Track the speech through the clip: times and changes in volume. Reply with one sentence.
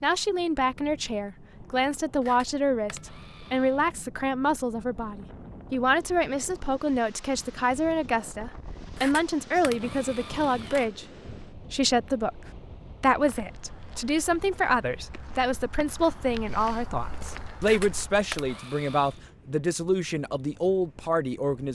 The speech can be heard from 0.0 to 21.7 s, at a steady volume.